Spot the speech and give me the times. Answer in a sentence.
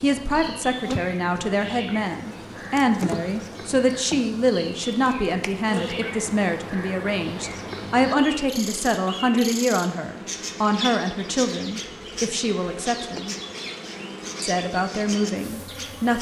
The speech can be heard from 0.0 to 13.3 s and from 14.4 to 16.1 s.